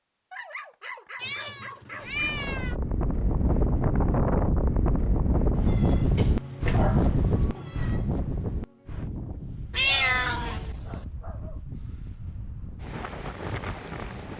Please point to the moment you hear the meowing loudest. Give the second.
10 s.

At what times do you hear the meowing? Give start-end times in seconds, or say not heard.
1.2-2.8, 5.5-8.1, 9.7-11.1.